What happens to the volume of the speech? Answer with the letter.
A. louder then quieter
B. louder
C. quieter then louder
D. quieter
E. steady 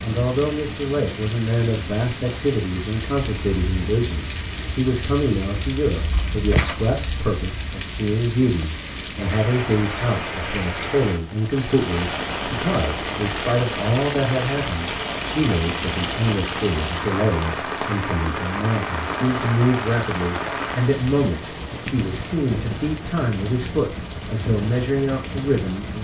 E.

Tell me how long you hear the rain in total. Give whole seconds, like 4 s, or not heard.
26 s.